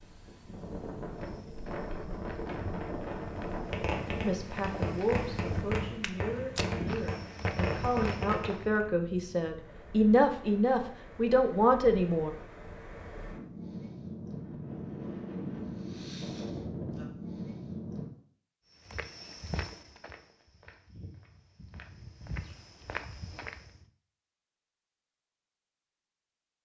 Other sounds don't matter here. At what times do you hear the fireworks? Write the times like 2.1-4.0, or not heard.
3.5-8.8.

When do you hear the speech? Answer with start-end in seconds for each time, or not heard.
4.2-12.3.